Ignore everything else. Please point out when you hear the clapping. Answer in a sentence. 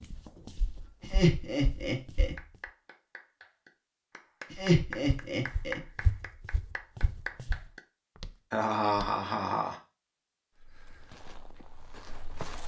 The clapping can be heard from 2.4 to 7.8 s.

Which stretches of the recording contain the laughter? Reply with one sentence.
The laughter can be heard from 1.0 to 2.4 s, from 4.5 to 5.8 s and from 8.5 to 9.8 s.